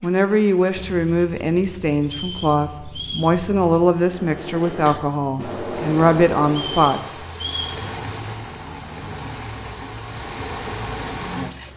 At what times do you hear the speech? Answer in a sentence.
You can hear the speech from 0.0 to 7.2 s.